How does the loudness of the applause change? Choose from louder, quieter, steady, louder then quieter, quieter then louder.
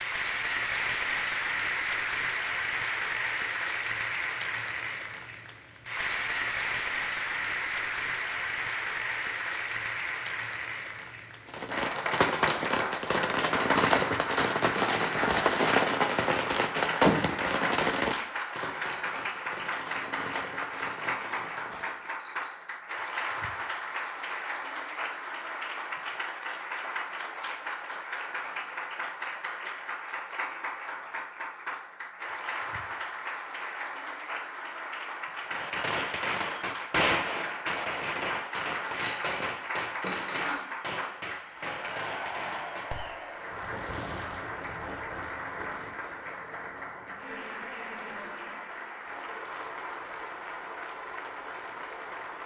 quieter.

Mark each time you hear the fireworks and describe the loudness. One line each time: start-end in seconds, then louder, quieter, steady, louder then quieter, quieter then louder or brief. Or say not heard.
11.4-22.1 quieter
35.5-46.0 quieter.